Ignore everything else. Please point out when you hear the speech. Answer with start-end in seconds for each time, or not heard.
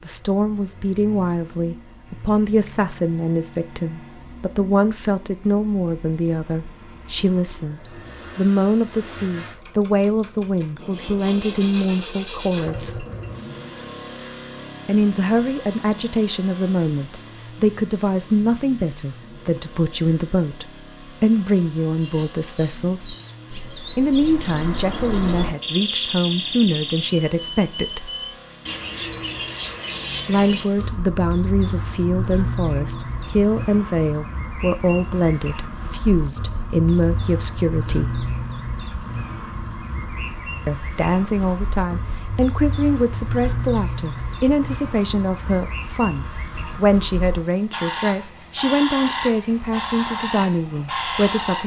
0.1-13.1, 14.8-23.1, 23.9-28.1, 30.2-38.2, 40.6-51.6.